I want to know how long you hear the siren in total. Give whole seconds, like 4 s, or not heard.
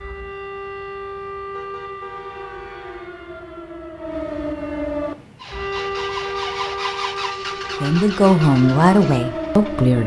10 s.